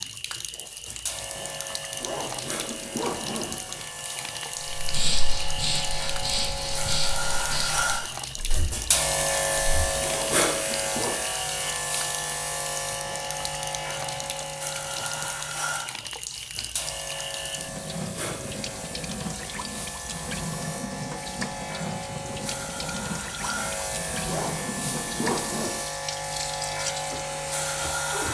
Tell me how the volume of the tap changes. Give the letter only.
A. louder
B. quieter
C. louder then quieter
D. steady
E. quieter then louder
D.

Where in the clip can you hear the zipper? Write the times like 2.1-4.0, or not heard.
1.9-3.9, 9.9-11.3, 24.2-25.8.